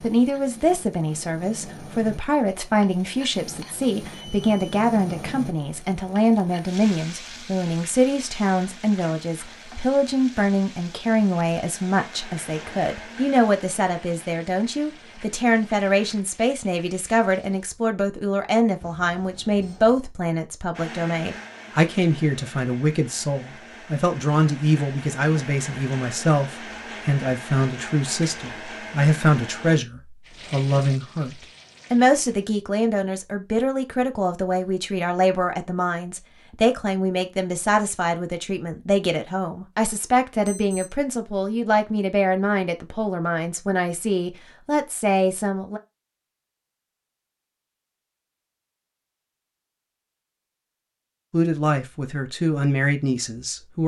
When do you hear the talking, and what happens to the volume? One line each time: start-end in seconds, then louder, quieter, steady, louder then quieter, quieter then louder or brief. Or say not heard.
0.0-45.8 steady
51.3-53.8 brief.